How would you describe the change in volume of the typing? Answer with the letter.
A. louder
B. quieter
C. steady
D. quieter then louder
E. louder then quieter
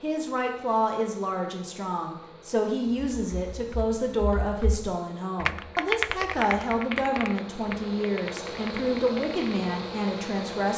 E.